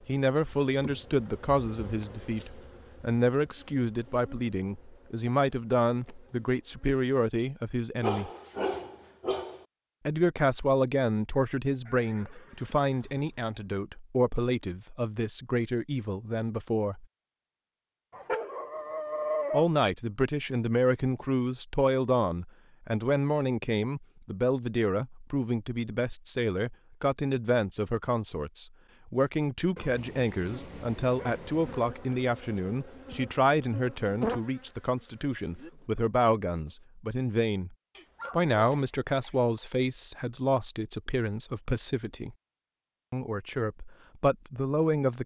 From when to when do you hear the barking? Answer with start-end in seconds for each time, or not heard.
8.0-9.7, 18.1-19.6, 29.8-31.8, 38.0-39.6.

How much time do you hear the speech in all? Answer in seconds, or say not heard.
40 s.